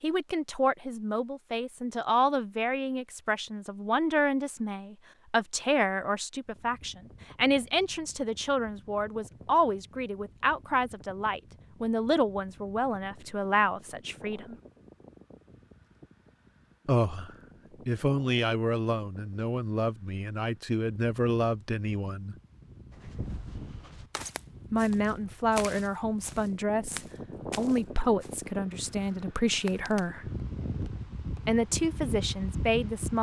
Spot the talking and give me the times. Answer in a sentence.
The talking can be heard from 0.0 to 14.6 s, from 16.9 to 22.4 s, from 24.7 to 30.3 s and from 31.3 to 33.1 s.